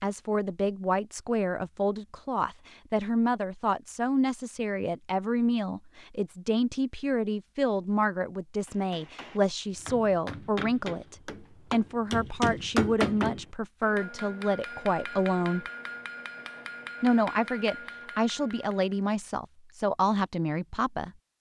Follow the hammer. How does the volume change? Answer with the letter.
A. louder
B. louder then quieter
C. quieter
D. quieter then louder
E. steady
B.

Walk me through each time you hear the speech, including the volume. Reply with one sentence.
You can hear the speech from 0.0 to 15.7 s, at a steady volume; and from 17.0 to 21.1 s, at a steady volume.